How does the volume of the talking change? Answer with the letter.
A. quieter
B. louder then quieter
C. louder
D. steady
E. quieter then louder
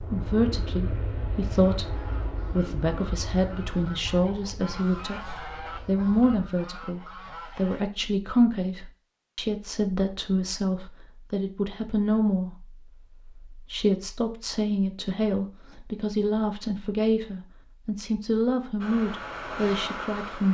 D.